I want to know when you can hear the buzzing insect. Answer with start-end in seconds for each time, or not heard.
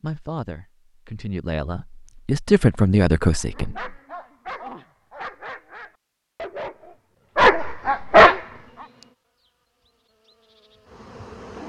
8.3-11.6.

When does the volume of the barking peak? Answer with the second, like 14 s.
8 s.